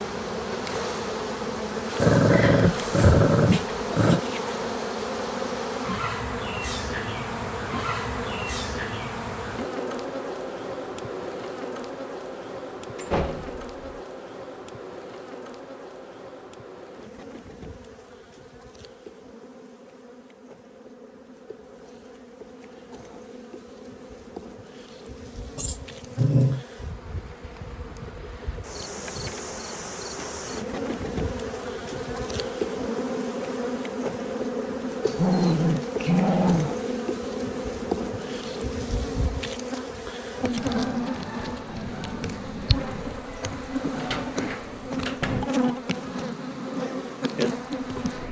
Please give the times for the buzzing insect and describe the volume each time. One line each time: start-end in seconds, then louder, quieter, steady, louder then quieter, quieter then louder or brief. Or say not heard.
0.0-48.2 quieter then louder.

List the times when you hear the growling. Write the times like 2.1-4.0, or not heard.
2.0-4.2, 25.6-26.6, 35.0-36.7.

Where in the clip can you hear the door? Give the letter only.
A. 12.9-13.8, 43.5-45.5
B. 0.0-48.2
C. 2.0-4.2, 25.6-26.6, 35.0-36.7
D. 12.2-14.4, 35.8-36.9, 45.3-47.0
A.